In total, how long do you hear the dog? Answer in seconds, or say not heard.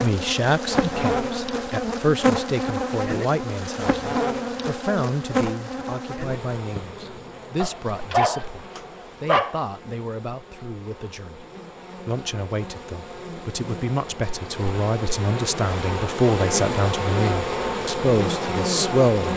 2 s.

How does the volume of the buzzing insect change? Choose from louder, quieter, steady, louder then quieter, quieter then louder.
quieter then louder.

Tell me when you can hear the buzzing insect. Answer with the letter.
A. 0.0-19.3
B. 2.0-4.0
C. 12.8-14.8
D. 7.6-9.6
A.